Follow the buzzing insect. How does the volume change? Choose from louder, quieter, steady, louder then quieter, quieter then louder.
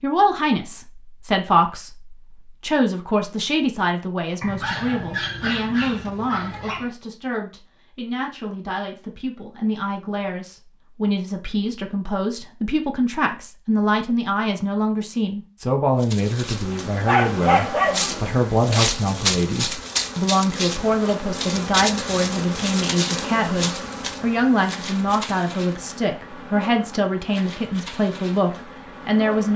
quieter.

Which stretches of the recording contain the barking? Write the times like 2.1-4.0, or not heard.
4.4-7.0, 17.1-18.9.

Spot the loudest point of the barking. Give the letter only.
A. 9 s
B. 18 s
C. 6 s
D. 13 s
B.